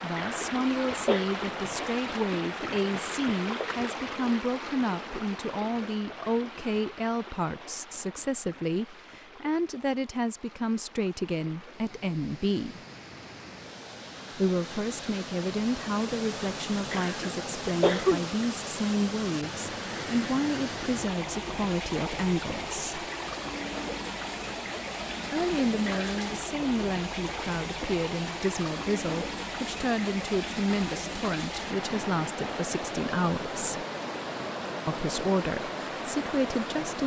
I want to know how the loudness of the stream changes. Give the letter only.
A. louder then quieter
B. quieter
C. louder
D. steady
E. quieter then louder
E.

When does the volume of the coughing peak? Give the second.
18 s.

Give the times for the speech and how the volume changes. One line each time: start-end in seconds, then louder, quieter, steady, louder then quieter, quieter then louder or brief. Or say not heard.
0.0-12.8 steady
14.3-23.1 steady
25.3-33.9 steady
34.9-37.0 brief.